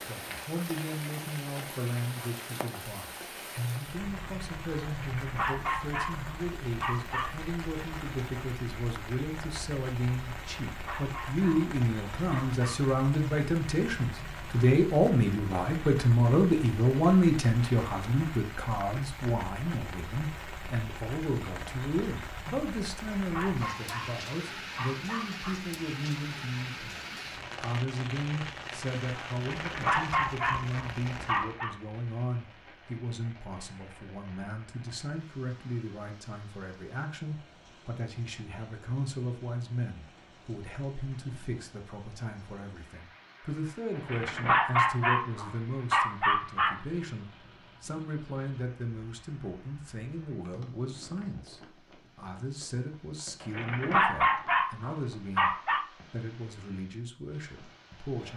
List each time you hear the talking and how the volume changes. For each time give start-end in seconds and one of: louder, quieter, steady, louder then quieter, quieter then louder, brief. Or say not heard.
0.0-58.3 louder then quieter.